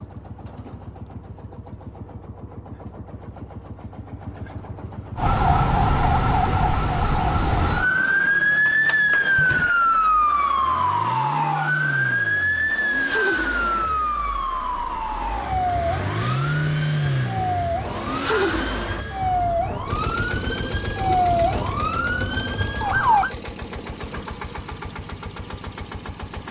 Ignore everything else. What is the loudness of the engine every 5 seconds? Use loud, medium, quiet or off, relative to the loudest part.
quiet, medium, medium, loud, medium, medium.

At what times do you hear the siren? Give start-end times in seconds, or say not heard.
5.2-23.3.